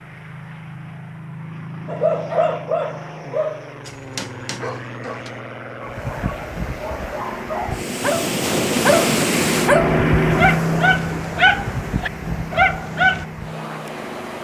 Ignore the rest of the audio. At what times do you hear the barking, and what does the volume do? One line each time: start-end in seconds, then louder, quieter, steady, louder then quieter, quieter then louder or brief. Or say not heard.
1.9-13.2 quieter then louder.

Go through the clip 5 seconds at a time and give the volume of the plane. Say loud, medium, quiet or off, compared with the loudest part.
medium, loud, loud.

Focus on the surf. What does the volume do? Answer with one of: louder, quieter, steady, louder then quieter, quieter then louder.
louder then quieter.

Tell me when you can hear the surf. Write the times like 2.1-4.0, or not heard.
5.8-14.4.